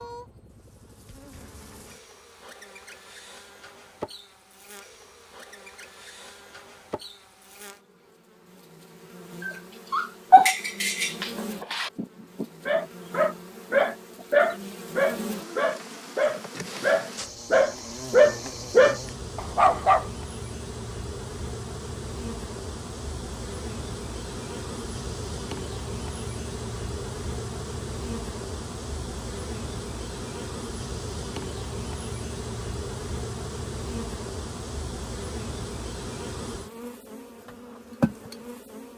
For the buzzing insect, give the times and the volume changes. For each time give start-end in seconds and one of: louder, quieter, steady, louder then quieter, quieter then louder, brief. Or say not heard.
0.0-38.9 louder.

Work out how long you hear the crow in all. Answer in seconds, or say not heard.
not heard.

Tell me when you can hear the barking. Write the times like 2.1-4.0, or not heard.
9.4-20.1.